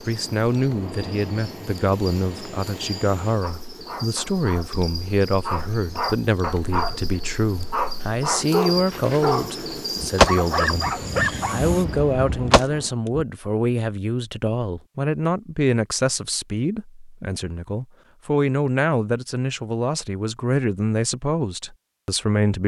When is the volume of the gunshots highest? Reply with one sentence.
The volume of the gunshots peaks at 10 seconds.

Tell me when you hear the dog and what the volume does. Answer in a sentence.
The dog can be heard from 3.4 to 11.7 s, getting louder.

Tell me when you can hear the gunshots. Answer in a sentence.
You can hear the gunshots from 10.0 to 13.2 s.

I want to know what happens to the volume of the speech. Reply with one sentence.
The loudness of the speech stays about the same.